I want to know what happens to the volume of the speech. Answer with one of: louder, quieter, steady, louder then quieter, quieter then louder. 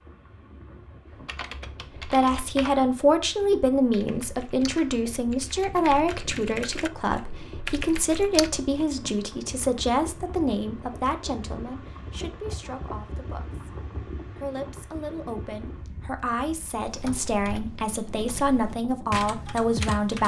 quieter then louder.